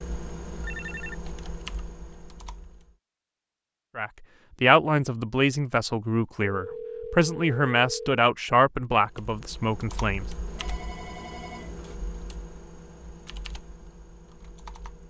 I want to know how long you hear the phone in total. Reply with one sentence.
You can hear the phone for 4 seconds altogether.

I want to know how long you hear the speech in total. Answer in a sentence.
The speech can be heard for 6 seconds in total.